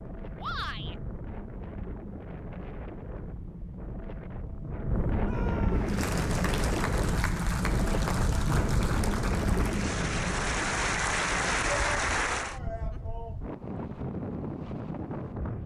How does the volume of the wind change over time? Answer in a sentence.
The loudness of the wind goes up, then down.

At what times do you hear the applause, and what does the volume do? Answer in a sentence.
You can hear the applause from 5.7 to 12.6 s, getting louder.